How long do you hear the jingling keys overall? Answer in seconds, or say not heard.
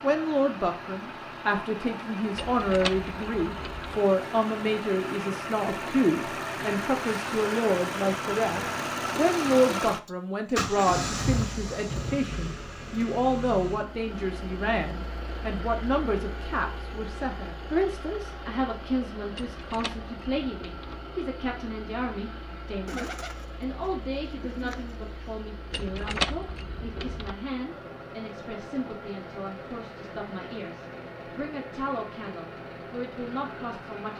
5 s.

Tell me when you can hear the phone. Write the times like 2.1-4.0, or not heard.
not heard.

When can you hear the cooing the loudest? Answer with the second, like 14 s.
23 s.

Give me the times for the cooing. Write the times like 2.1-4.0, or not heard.
22.9-25.4.